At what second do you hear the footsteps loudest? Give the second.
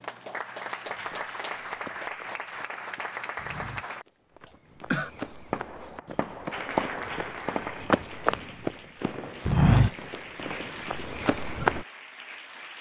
10 s.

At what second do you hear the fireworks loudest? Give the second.
7 s.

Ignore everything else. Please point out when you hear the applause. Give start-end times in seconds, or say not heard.
0.0-4.0, 6.5-12.7.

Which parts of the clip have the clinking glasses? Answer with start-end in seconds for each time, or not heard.
not heard.